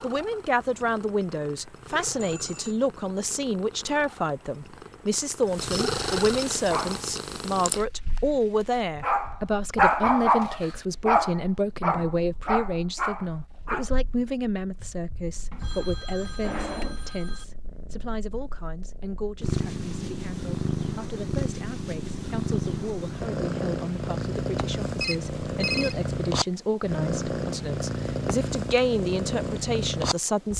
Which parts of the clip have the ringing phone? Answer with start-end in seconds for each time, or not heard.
1.9-3.0, 15.5-17.4, 25.0-25.9.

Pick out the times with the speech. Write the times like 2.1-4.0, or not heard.
0.0-30.5.